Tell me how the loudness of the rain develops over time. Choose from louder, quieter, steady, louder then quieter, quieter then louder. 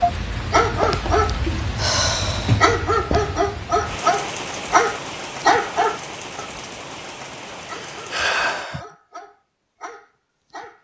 quieter.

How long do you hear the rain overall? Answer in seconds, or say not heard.
9 s.